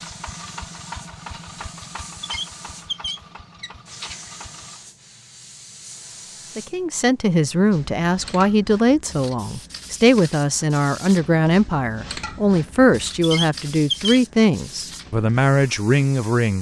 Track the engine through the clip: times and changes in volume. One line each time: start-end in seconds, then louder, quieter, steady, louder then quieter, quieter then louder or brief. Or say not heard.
0.0-4.8 quieter.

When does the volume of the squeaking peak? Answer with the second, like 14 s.
14 s.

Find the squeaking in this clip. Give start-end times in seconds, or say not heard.
2.2-4.2, 13.2-14.2.